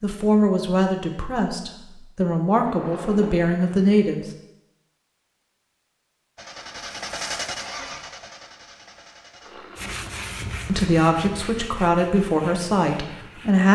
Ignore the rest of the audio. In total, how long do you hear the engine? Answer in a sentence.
You can hear the engine for 4 seconds altogether.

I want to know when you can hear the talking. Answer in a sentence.
You can hear the talking from 0.0 to 4.2 s and from 10.7 to 13.6 s.